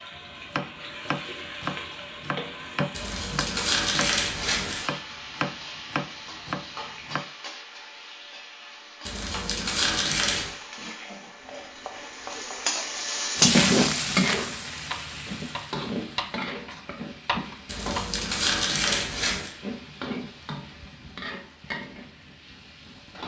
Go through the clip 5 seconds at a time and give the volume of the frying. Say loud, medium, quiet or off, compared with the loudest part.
quiet, quiet, loud, medium, quiet.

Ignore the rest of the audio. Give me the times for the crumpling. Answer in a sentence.
The crumpling can be heard from 2.9 to 4.9 s, from 9.1 to 10.6 s and from 17.6 to 19.6 s.